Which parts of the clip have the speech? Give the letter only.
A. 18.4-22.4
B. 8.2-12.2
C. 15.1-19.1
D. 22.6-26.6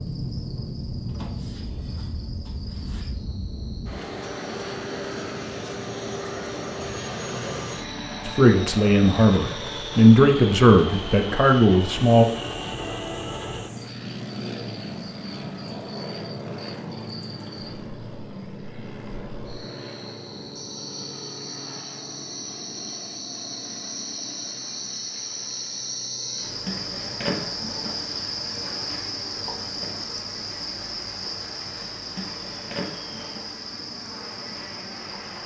B.